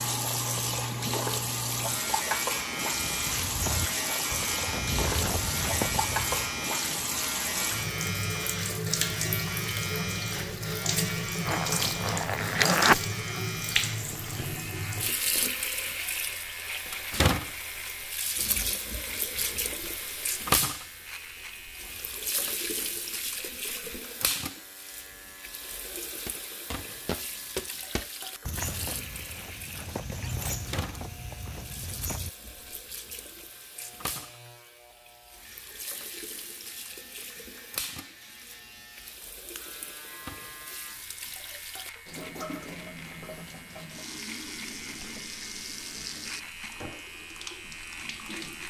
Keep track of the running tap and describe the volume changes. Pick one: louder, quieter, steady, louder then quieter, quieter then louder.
quieter.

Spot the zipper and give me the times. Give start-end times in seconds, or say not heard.
11.4-13.1.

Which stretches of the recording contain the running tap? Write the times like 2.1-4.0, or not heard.
0.0-48.6.